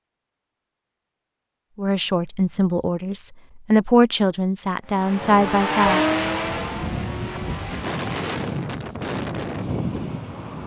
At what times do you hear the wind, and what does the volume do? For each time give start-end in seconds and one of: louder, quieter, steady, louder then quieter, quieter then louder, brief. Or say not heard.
5.0-10.6 louder.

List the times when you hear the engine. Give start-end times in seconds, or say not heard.
4.8-8.4.